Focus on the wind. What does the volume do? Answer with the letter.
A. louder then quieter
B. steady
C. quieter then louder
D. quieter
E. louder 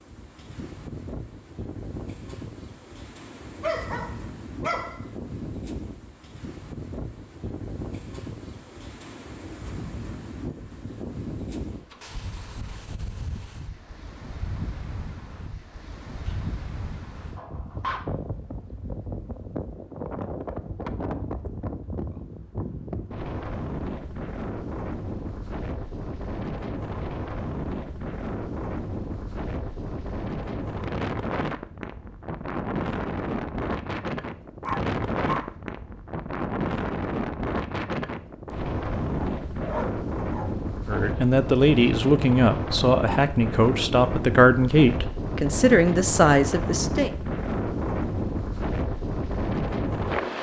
E.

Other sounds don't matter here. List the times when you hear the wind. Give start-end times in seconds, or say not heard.
0.0-50.3.